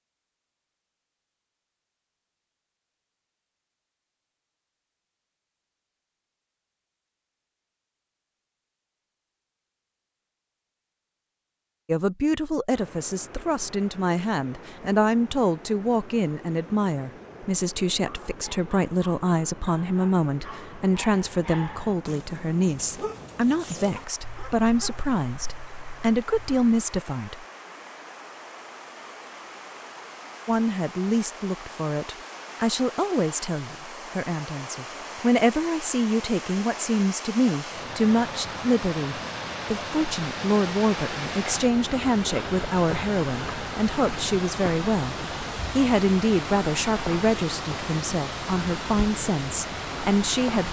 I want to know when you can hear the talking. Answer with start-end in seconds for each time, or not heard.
11.8-27.4, 30.4-45.1, 45.8-50.6.